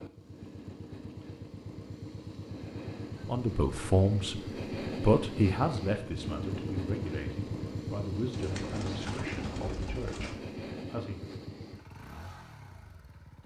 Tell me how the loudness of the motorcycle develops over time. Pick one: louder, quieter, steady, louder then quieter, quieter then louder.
louder then quieter.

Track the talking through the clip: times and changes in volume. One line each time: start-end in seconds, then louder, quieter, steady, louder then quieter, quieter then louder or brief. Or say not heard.
3.2-4.4 brief
5.0-11.3 quieter.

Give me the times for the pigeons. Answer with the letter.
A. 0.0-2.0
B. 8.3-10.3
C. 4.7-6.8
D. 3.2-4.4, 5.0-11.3
B.